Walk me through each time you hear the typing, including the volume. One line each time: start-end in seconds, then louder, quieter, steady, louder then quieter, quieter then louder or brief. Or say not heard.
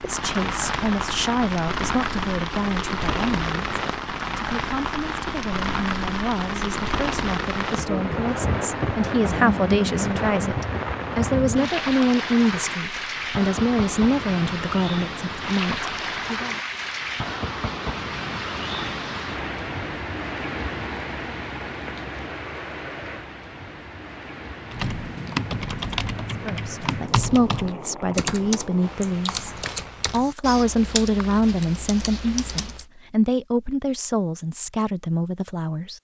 24.7-32.9 quieter.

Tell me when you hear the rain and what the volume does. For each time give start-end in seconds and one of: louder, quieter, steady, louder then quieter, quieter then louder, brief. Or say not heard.
0.0-30.2 quieter.